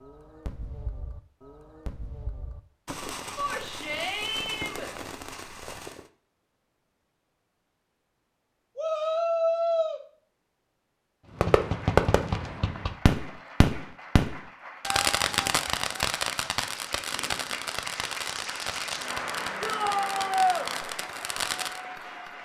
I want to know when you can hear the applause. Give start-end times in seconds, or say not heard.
11.6-22.3.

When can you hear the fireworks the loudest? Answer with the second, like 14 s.
12 s.